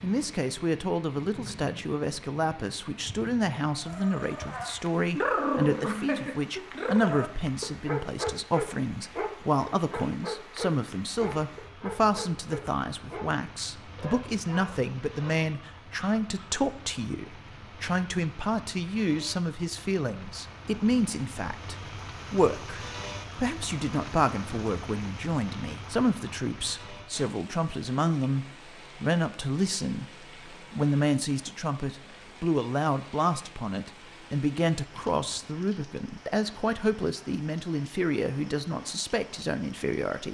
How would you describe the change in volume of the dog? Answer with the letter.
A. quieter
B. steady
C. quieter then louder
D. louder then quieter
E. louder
A.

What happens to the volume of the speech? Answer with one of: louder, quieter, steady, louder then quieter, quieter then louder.
steady.